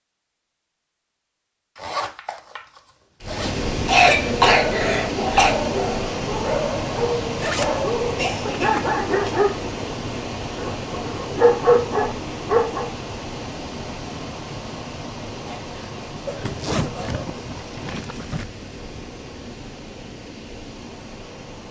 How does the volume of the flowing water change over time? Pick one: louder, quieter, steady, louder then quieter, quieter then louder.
quieter.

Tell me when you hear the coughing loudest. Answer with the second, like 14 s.
4 s.